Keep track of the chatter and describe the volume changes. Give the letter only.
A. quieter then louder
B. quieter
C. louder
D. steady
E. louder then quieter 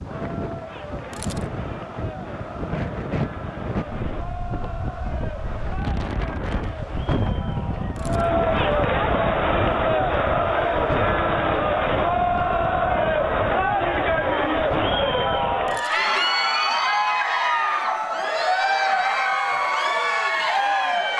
C.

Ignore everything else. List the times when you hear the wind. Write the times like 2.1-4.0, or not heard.
0.0-15.8.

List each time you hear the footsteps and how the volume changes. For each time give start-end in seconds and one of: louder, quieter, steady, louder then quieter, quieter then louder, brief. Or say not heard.
not heard.